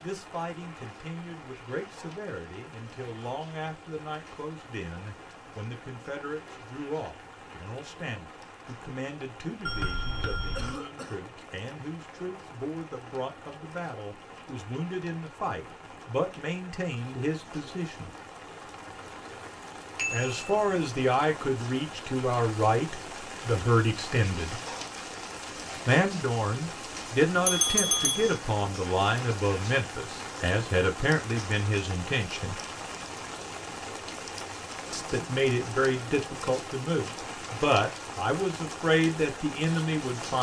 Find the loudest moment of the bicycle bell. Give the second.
28 s.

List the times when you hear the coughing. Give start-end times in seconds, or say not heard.
10.6-11.2.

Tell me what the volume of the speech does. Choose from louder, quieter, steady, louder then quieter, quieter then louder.
louder.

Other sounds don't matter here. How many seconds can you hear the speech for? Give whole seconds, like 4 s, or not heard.
35 s.